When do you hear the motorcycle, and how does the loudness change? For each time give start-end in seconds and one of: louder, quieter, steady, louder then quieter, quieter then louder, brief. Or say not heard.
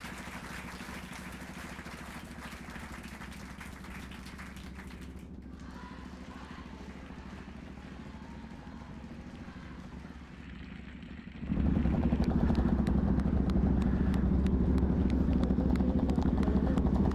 0.0-17.1 louder.